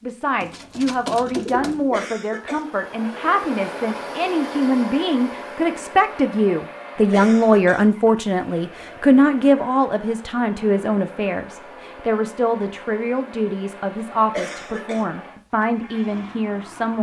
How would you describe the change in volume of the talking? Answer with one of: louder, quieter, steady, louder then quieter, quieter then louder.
louder then quieter.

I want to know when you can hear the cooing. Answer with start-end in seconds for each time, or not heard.
0.4-2.0.